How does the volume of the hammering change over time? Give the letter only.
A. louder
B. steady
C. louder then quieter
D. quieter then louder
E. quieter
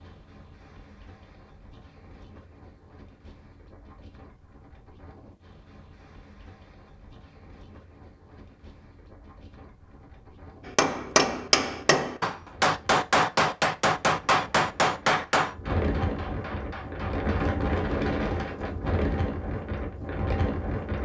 E.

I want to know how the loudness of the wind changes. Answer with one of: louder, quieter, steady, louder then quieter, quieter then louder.
louder.